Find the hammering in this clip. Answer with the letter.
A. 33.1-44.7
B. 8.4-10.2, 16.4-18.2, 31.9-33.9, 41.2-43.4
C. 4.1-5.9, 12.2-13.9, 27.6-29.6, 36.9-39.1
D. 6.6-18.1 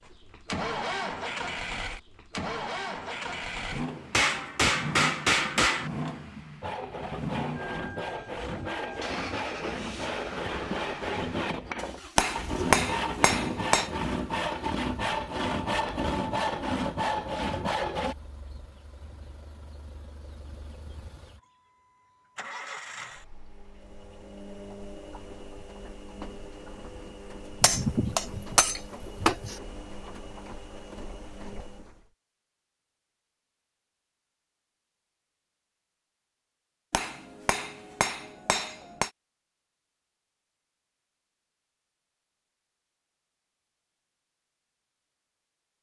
C.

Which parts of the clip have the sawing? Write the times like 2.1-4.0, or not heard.
6.6-18.1.